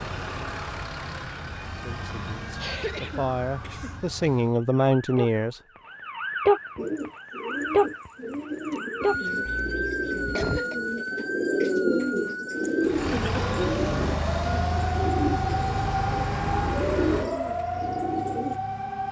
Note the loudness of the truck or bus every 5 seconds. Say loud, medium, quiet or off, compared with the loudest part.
medium, off, loud, loud.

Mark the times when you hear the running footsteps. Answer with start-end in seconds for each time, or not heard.
not heard.